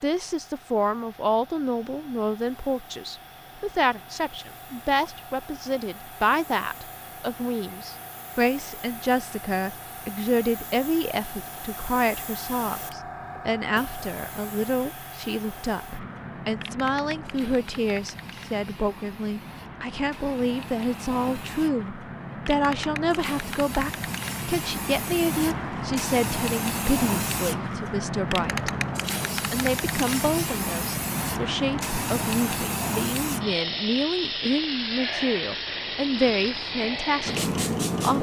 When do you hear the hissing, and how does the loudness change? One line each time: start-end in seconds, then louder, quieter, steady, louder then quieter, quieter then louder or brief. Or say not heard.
0.0-38.1 louder.